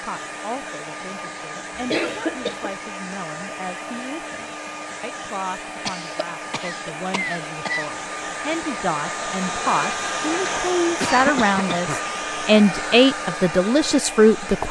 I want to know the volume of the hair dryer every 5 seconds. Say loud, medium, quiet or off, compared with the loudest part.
medium, loud, loud.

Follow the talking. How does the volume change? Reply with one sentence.
The volume of the talking goes up.